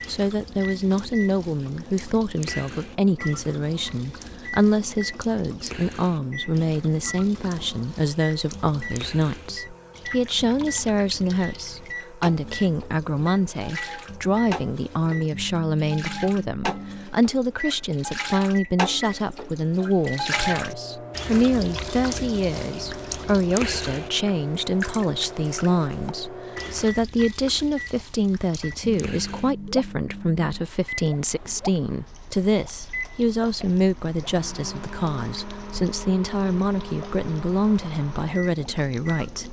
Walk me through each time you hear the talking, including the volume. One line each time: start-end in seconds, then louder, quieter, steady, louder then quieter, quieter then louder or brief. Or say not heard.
0.1-39.4 steady.